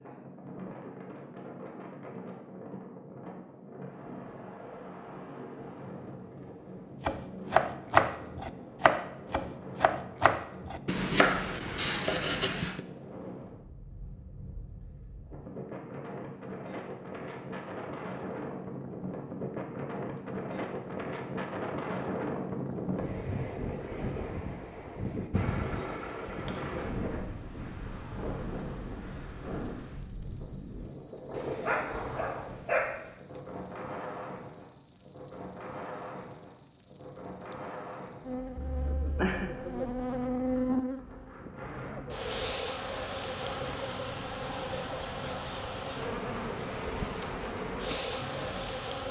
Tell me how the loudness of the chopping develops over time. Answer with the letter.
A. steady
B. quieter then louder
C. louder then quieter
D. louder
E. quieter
E.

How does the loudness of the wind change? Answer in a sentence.
The loudness of the wind goes up, then down.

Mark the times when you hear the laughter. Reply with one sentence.
The laughter can be heard from 38.5 to 39.5 s.